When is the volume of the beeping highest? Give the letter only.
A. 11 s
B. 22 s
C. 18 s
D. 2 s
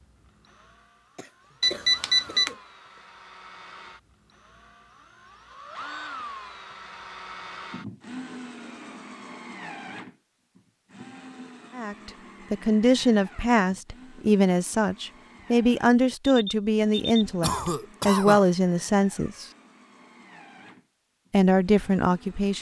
D.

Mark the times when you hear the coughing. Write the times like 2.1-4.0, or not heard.
1.1-2.6, 17.4-18.5.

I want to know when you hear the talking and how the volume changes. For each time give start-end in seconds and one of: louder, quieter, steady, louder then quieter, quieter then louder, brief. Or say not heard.
11.8-19.4 steady
21.3-22.5 brief.